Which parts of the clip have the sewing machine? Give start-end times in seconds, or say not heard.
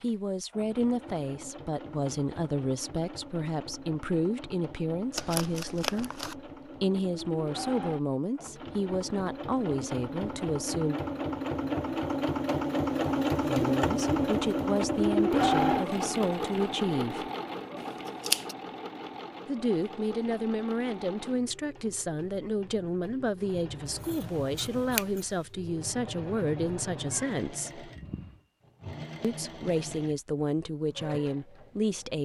0.0-32.2.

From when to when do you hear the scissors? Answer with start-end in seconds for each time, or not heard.
5.2-6.3, 17.8-18.6, 23.9-25.4.